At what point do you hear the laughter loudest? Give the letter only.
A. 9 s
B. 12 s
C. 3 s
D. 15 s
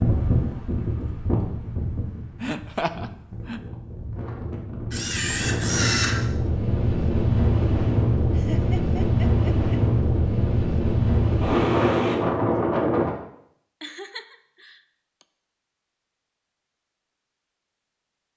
C.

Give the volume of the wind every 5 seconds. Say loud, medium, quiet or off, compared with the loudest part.
medium, loud, loud, off.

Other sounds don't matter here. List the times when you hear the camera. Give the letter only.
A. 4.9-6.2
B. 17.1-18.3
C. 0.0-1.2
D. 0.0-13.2
A.